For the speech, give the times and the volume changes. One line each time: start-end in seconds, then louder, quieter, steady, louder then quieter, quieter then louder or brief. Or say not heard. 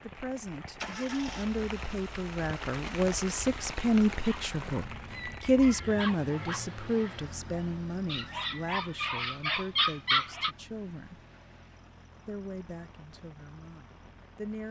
0.0-11.2 louder then quieter
12.2-14.6 brief.